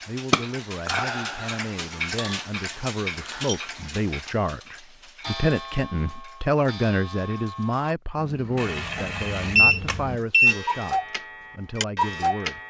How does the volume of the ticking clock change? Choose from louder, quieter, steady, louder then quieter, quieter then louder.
quieter then louder.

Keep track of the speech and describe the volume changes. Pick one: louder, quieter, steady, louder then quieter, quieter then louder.
louder then quieter.